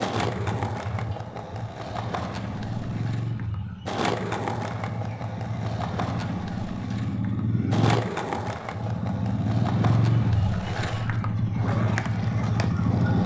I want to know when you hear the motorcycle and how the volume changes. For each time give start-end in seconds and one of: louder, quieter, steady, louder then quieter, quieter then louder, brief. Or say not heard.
0.1-13.2 louder.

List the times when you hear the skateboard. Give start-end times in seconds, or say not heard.
0.0-13.2.